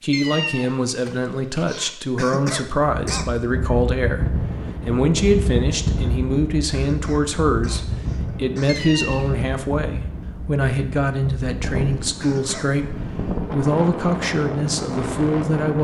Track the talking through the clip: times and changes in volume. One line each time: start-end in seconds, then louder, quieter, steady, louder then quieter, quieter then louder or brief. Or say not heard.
0.0-15.7 steady.